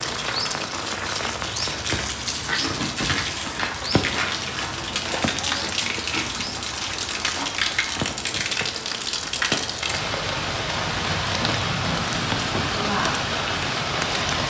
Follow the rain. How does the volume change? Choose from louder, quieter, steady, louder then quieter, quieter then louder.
steady.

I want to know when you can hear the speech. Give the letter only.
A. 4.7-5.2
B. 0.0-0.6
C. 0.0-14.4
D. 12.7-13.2
D.